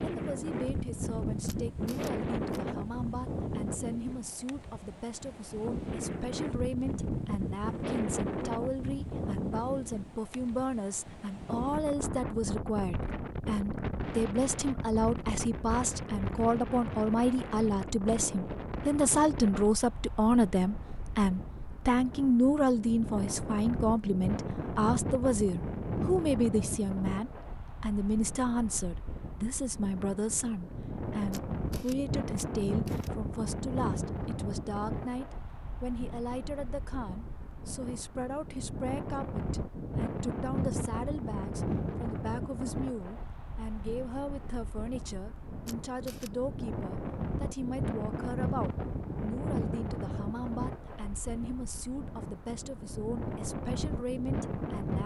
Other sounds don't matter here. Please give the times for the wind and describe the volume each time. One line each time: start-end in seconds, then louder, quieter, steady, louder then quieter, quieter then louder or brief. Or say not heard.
0.0-55.0 steady.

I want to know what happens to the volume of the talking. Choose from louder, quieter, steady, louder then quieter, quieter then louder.
louder then quieter.